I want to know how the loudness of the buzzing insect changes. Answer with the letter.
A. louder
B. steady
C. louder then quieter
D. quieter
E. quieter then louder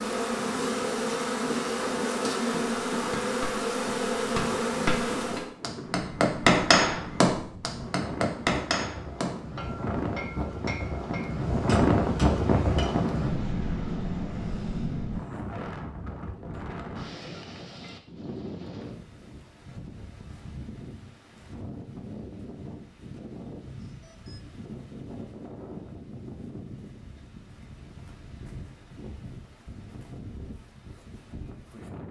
B.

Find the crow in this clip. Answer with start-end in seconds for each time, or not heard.
not heard.